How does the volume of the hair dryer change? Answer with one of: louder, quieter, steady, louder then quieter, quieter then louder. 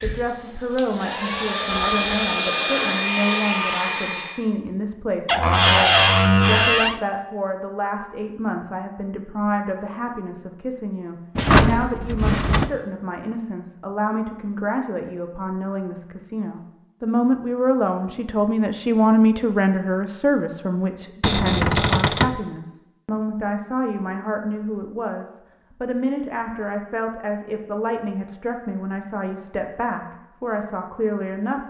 louder.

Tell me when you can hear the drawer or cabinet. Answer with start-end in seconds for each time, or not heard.
5.2-7.0, 11.3-12.7, 21.2-22.4.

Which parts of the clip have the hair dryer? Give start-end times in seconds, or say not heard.
0.0-4.4.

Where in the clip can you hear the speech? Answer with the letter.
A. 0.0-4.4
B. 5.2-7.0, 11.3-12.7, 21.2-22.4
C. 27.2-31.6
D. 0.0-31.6
D.